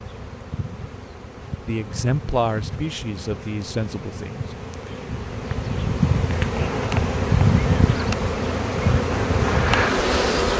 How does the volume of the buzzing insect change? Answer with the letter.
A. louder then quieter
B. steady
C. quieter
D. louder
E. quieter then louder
D.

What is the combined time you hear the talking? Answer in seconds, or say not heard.
3 s.